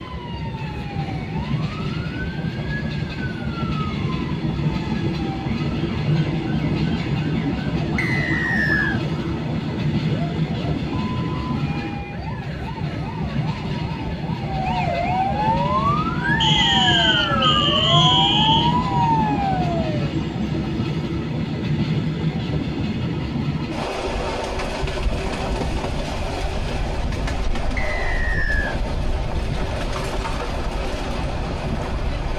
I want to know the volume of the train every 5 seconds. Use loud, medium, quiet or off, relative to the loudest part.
loud, loud, loud, loud, loud, medium, medium.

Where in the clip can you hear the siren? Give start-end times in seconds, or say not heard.
0.0-20.1.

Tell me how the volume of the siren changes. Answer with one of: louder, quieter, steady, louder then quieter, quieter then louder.
louder.